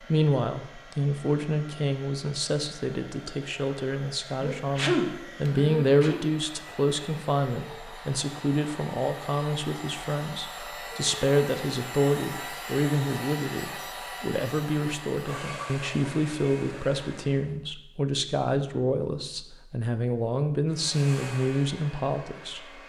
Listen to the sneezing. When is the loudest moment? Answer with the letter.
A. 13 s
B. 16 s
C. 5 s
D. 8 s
C.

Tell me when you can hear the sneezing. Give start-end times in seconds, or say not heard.
3.7-6.2.